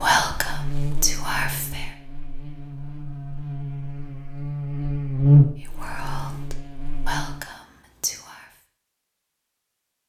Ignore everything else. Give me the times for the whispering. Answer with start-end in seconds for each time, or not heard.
0.0-1.9, 5.8-8.5.